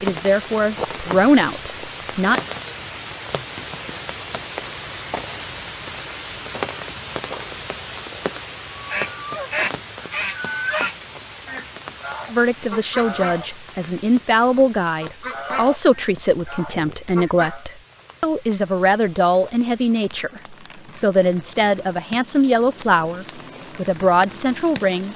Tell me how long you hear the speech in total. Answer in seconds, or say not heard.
15 s.